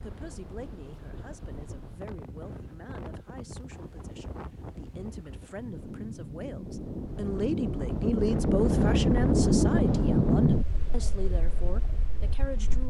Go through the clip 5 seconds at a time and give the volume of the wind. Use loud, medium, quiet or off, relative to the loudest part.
quiet, loud, loud.